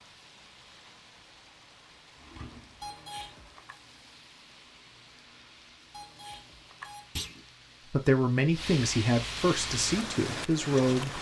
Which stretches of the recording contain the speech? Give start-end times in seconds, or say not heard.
7.9-11.1.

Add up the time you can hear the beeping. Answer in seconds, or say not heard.
2 s.